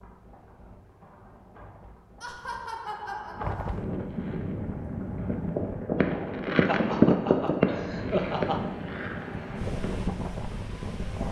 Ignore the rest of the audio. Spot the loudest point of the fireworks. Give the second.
7 s.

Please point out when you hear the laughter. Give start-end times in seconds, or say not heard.
2.2-3.8, 6.7-8.8.